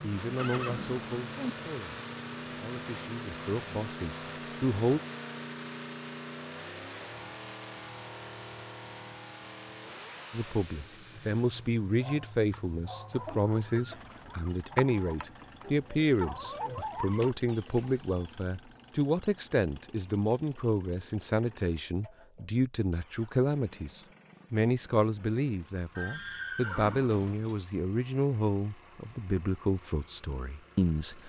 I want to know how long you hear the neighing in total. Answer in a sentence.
You can hear the neighing for 4 seconds altogether.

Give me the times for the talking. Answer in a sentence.
The talking can be heard from 0.0 to 5.0 s and from 10.3 to 31.2 s.